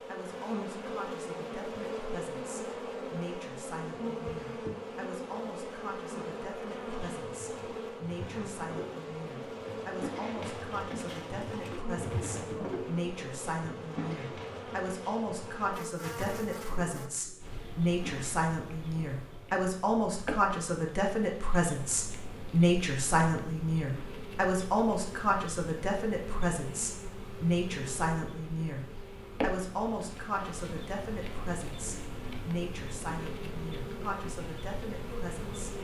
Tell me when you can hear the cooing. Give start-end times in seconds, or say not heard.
6.8-18.4.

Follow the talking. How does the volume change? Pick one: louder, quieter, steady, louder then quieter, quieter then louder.
louder then quieter.